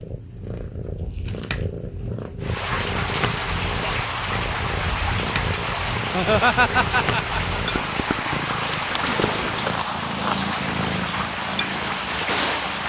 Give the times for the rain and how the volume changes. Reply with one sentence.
The rain can be heard from 2.4 to 12.8 s, at a steady volume.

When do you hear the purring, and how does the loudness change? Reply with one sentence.
The purring can be heard from 0.0 to 12.8 s, at a steady volume.